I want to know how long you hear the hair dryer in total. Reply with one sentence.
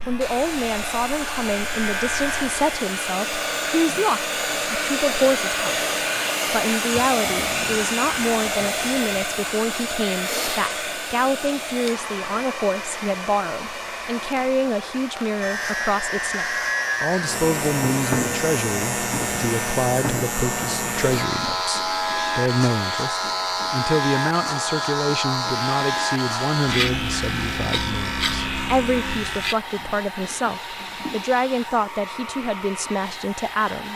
You can hear the hair dryer for 34 seconds altogether.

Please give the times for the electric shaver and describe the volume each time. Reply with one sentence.
The electric shaver can be heard briefly from 0.0 to 2.6 s; and from 15.4 to 29.6 s, at a steady volume.